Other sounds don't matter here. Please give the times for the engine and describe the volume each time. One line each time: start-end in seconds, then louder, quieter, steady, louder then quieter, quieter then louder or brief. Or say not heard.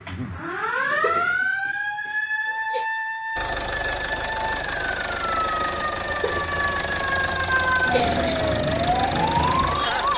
3.4-10.1 steady.